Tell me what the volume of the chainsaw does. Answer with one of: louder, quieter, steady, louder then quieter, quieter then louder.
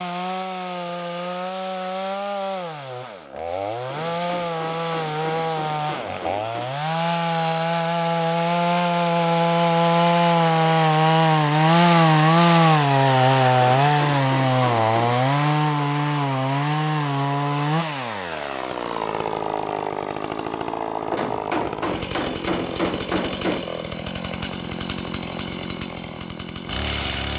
louder then quieter.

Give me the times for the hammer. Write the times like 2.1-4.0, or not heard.
3.9-6.8, 13.8-15.0, 21.1-23.7.